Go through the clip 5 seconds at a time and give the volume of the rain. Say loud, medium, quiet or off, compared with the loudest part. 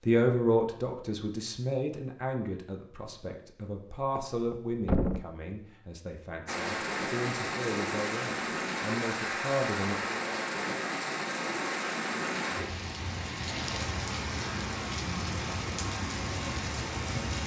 off, loud, loud, loud.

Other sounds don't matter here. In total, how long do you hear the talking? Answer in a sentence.
You can hear the talking for 10 seconds altogether.